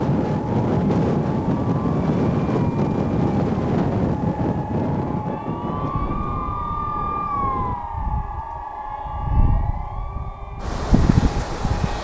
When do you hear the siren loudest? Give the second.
7 s.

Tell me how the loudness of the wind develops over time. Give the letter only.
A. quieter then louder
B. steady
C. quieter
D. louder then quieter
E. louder
A.